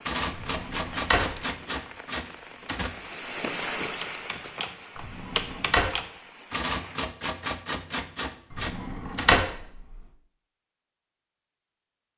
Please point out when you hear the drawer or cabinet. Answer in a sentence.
You can hear the drawer or cabinet from 0.3 to 1.3 s, from 5.0 to 5.9 s and from 8.5 to 9.7 s.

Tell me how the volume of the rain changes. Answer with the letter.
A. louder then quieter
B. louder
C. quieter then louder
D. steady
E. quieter
A.